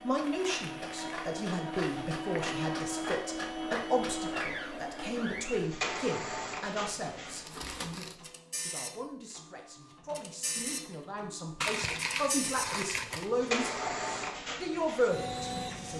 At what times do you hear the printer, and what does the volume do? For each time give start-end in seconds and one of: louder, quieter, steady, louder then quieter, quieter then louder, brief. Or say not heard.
0.0-15.9 quieter then louder.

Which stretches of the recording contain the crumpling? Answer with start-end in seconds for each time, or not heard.
0.2-2.1, 7.5-8.2, 11.6-13.3.